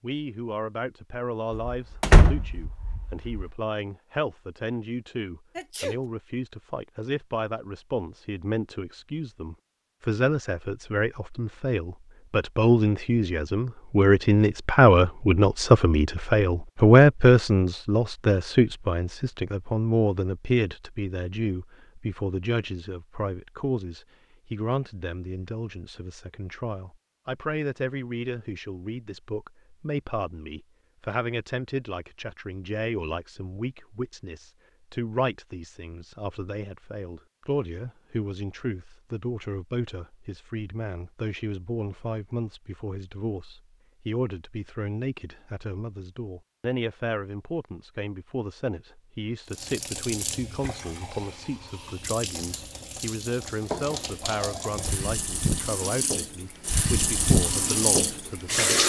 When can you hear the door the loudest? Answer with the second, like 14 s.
2 s.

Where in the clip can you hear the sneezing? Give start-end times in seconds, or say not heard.
5.5-6.0.